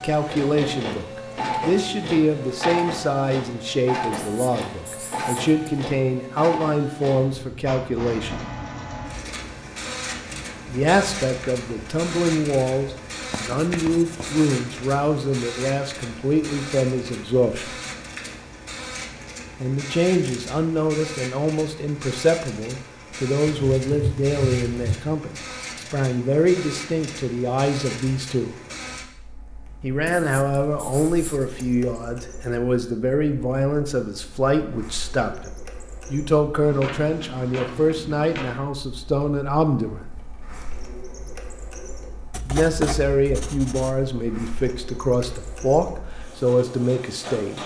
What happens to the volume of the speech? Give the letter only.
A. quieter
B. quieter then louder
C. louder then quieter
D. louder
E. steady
E.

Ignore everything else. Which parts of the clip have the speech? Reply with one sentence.
The speech can be heard from 0.0 to 8.4 s, from 10.7 to 17.7 s, from 19.6 to 28.6 s, from 29.8 to 35.5 s, from 36.1 to 40.0 s and from 42.5 to 47.6 s.